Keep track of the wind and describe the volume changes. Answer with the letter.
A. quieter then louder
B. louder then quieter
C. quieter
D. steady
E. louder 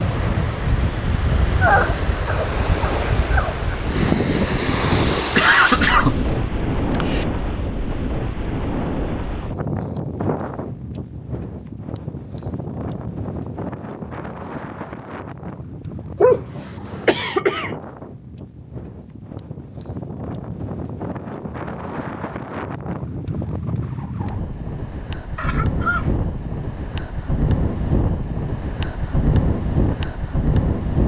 A.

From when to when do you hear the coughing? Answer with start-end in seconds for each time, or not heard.
5.3-7.2, 17.1-17.8, 25.4-26.4.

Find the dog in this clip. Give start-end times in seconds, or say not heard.
1.6-3.6, 16.1-17.1.